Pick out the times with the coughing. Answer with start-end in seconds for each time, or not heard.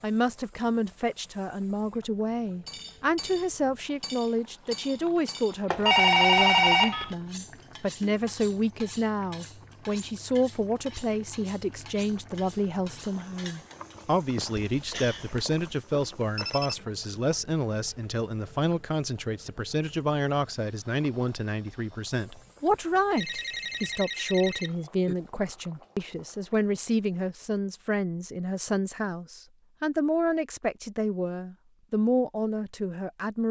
14.3-15.3.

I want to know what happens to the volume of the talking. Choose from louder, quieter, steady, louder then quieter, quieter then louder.
steady.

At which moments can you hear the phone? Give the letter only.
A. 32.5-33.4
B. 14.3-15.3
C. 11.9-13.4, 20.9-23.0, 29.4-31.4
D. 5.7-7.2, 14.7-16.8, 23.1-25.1
D.